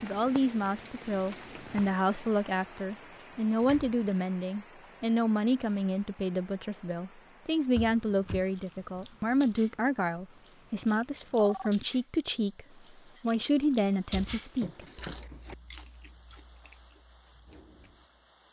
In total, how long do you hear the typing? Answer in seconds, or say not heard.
not heard.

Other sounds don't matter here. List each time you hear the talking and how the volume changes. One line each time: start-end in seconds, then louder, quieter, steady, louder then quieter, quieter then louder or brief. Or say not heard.
0.0-14.8 steady.